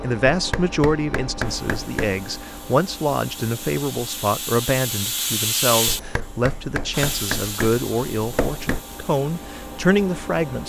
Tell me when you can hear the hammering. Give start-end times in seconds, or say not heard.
0.3-2.1, 5.8-8.8.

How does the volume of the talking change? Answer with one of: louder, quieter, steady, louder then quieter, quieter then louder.
steady.